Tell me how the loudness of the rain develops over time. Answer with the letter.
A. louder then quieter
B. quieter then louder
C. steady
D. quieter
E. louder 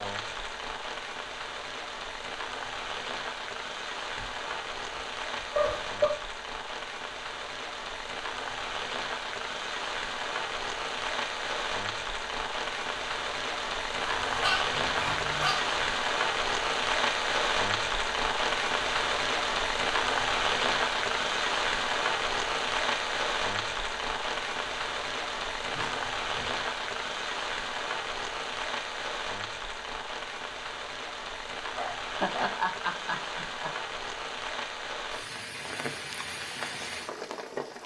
A.